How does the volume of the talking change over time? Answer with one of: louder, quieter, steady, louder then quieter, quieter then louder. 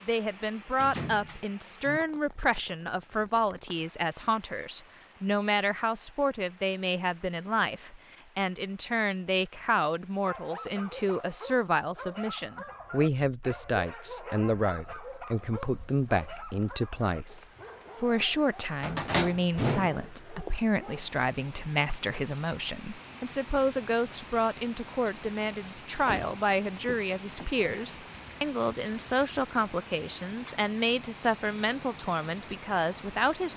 steady.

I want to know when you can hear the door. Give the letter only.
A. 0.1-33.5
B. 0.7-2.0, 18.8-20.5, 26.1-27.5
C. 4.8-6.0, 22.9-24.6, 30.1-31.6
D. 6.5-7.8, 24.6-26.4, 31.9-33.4
B.